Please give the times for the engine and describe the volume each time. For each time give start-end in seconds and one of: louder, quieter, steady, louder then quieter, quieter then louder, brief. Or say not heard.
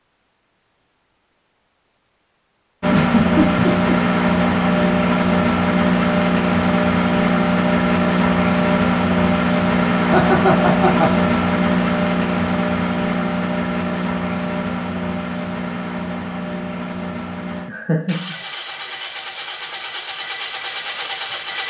2.8-21.6 quieter.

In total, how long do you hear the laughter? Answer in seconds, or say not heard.
3 s.